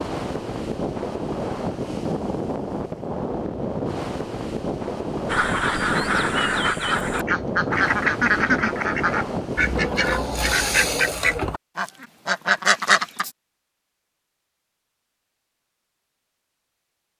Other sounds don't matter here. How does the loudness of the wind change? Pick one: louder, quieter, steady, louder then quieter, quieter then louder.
steady.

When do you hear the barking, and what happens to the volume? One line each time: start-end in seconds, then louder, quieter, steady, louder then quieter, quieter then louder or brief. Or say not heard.
not heard.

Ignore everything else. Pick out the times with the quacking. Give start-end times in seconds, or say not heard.
5.2-13.3.